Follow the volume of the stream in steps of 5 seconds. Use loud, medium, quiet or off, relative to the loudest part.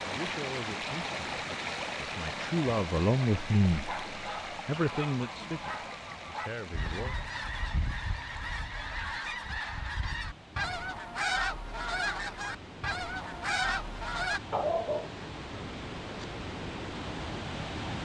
loud, medium, medium, loud.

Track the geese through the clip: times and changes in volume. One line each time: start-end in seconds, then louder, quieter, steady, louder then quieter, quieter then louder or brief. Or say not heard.
4.1-14.4 louder.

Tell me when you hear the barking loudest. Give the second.
15 s.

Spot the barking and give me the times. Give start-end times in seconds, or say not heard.
3.9-6.5, 14.5-16.3.